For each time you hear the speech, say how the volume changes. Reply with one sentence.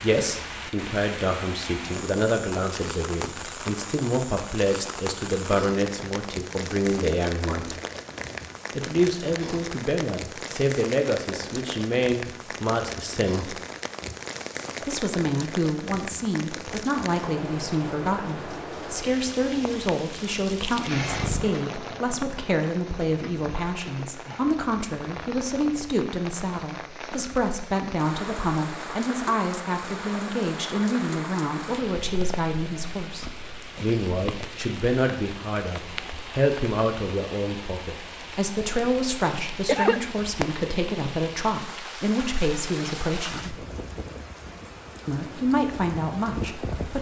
You can hear the speech from 0.0 to 7.8 s, at a steady volume; from 8.8 to 13.6 s, at a steady volume; from 14.8 to 43.5 s, at a steady volume; and briefly from 45.0 to 46.9 s.